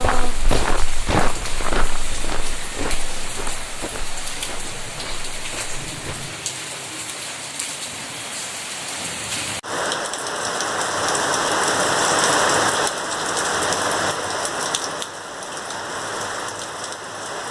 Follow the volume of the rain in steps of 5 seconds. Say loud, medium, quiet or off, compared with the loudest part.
medium, medium, loud, medium.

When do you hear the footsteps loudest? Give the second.
1 s.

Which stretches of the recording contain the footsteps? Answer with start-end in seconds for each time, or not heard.
0.0-6.3.